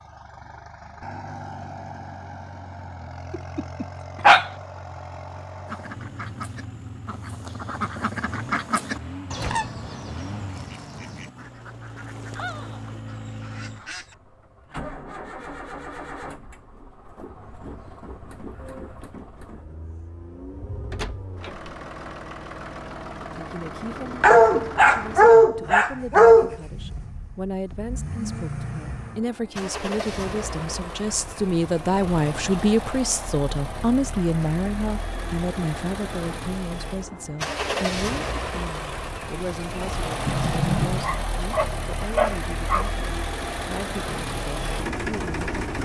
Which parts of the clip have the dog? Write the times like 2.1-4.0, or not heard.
3.3-4.5, 24.2-26.6, 41.0-42.9.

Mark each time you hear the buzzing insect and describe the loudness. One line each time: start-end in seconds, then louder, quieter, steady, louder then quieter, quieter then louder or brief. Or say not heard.
not heard.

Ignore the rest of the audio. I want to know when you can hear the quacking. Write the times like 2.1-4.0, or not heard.
5.7-14.2.